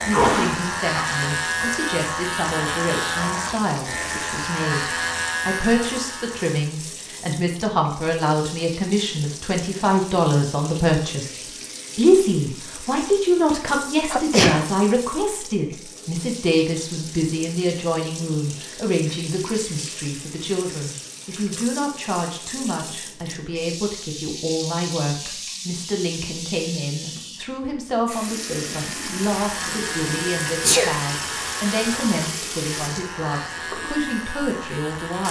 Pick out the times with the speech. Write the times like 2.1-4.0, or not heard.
0.1-35.2.